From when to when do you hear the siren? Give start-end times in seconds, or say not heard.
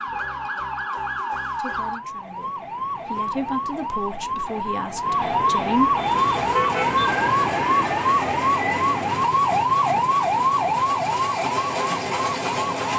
0.0-12.9.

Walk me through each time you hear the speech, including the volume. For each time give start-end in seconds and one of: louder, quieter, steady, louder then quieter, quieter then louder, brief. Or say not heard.
1.6-6.0 louder then quieter.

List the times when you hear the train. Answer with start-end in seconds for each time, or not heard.
6.0-12.9.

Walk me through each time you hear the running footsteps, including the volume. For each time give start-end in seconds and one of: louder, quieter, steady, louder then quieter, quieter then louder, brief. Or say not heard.
not heard.